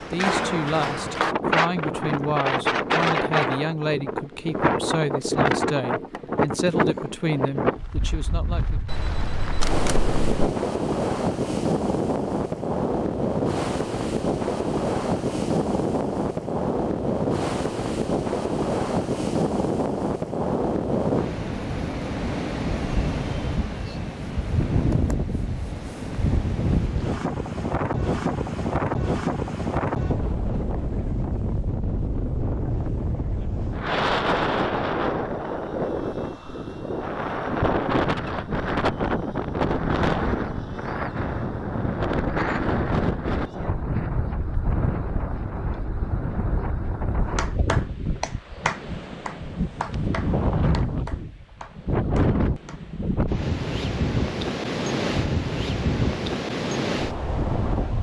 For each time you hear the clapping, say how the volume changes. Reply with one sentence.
The clapping can be heard from 47.4 to 52.9 s, getting quieter.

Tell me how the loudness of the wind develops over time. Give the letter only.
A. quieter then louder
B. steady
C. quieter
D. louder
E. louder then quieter
B.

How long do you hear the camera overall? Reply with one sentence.
The camera can be heard for 2 seconds in total.